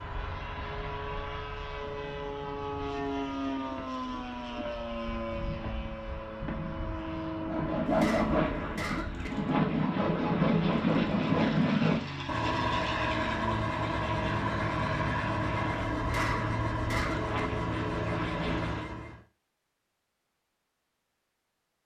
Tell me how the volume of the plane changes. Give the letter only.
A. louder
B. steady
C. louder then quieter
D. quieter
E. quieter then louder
B.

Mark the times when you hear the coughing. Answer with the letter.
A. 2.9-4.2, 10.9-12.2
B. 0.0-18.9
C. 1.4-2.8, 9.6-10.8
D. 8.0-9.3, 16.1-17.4
D.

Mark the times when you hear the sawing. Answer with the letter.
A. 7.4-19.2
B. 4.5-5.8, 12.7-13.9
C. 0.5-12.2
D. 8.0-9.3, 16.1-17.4
A.